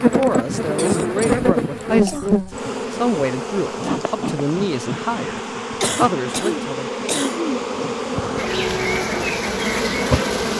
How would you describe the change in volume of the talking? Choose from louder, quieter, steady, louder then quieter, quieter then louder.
steady.